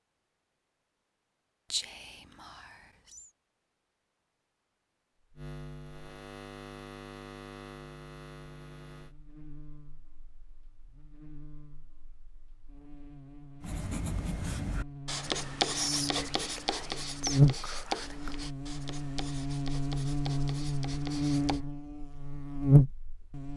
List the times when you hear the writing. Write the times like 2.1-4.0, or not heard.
13.6-21.6.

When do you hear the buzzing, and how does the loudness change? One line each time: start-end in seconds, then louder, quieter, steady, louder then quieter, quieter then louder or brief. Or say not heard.
5.3-23.5 quieter then louder.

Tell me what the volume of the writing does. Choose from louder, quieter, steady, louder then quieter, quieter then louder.
quieter.